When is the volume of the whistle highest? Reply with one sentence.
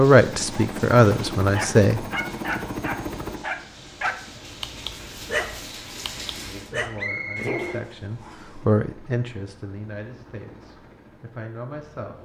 The volume of the whistle peaks at 7 seconds.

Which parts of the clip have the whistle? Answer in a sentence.
You can hear the whistle from 7.0 to 8.6 s.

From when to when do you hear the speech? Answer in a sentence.
You can hear the speech from 0.0 to 2.0 s and from 6.2 to 12.2 s.